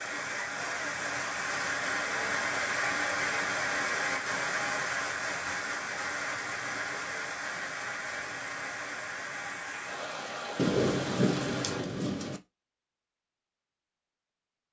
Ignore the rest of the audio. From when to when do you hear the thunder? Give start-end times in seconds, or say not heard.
10.6-12.4.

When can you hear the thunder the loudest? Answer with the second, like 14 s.
11 s.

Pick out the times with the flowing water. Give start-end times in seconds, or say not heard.
0.0-11.8.